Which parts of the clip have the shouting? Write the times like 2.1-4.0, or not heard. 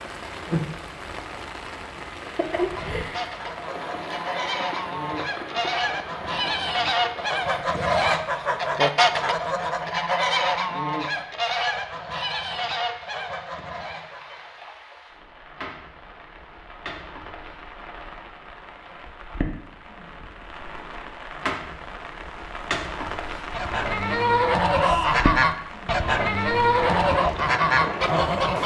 7.8-8.2, 24.8-25.4.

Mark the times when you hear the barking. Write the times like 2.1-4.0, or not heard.
not heard.